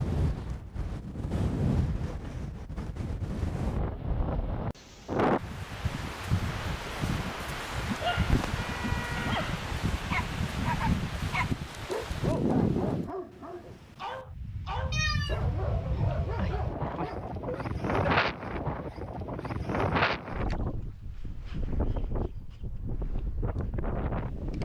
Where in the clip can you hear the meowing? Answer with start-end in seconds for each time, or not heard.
8.3-9.2, 14.9-15.4.